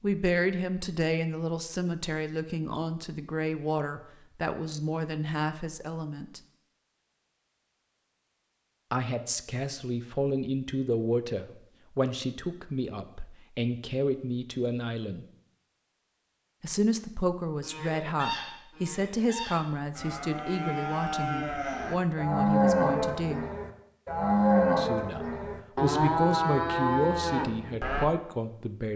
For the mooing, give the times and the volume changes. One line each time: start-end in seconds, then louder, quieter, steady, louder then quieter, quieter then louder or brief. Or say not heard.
17.6-28.1 louder.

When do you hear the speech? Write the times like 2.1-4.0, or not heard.
0.0-6.4, 8.9-15.2, 16.6-23.4, 24.8-28.9.